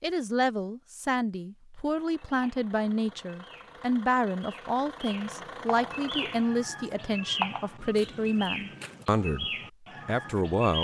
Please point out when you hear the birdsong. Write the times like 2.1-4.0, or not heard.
2.2-10.8.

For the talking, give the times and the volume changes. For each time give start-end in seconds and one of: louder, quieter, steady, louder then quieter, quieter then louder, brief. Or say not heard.
0.0-10.8 steady.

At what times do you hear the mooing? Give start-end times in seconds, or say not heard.
not heard.